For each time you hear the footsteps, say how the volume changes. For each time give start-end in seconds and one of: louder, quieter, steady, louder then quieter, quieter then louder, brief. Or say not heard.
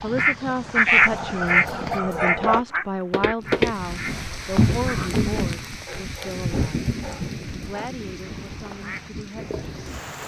0.0-5.7 louder.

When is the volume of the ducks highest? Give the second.
1 s.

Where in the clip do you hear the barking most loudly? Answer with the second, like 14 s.
2 s.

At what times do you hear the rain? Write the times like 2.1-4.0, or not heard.
3.4-10.2.